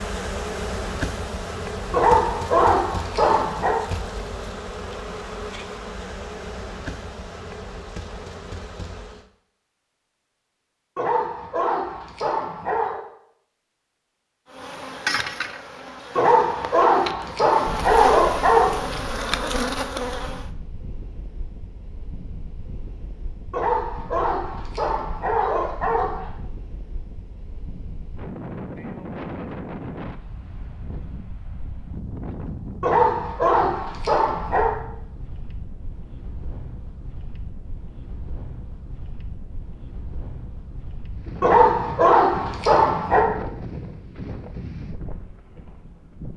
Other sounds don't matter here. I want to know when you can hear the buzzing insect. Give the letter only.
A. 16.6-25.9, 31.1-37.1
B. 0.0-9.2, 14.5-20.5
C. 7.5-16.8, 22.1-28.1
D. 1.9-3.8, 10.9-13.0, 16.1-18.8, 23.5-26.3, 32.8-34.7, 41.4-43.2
B.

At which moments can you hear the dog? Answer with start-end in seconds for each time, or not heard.
1.9-3.8, 10.9-13.0, 16.1-18.8, 23.5-26.3, 32.8-34.7, 41.4-43.2.